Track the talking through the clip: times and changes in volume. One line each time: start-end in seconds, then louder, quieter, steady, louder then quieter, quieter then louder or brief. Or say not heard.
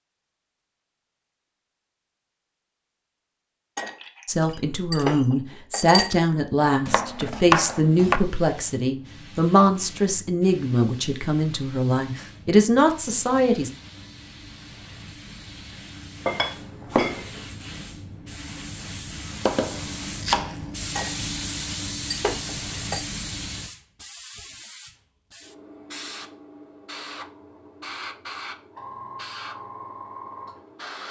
4.2-13.7 steady.